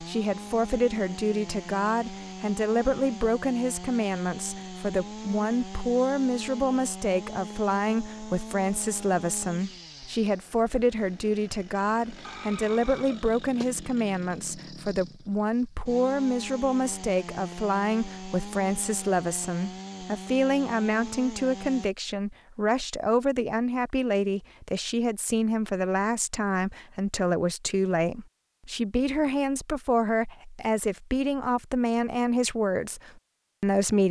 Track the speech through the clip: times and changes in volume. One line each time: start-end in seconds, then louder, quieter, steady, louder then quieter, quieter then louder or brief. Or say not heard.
0.0-34.0 steady.